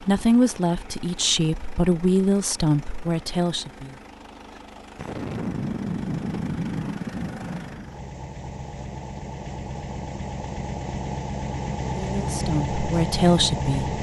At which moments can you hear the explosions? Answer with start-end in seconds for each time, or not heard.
5.0-7.9.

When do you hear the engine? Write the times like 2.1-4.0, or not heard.
0.0-13.9.